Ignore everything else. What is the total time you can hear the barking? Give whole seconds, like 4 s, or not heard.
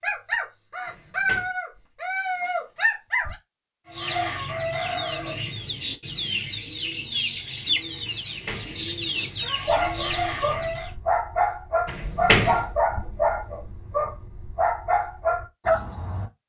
10 s.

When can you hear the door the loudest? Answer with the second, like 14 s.
12 s.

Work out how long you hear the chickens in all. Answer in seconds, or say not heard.
7 s.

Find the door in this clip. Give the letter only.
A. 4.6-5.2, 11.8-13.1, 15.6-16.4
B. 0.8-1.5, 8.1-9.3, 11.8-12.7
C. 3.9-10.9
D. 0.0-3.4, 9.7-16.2
B.